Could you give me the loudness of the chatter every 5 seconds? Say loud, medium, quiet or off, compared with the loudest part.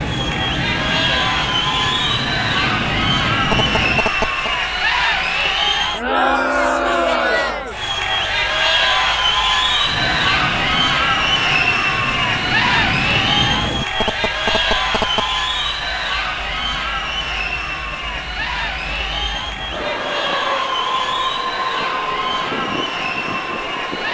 loud, loud, loud, medium, medium.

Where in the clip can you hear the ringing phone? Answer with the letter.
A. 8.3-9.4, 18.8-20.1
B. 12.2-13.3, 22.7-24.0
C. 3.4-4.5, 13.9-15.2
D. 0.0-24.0
C.